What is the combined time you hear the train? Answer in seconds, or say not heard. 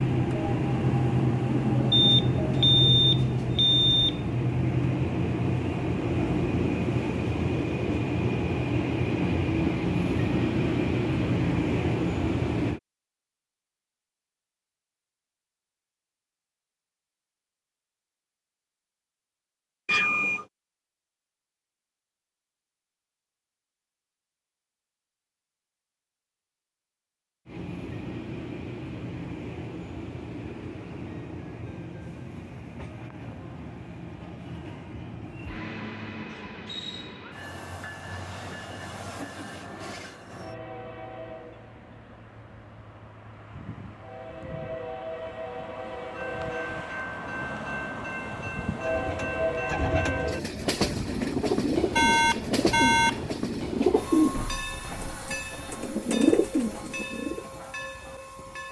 44 s.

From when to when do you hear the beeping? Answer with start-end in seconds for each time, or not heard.
1.9-4.3, 19.9-20.4, 51.9-53.4.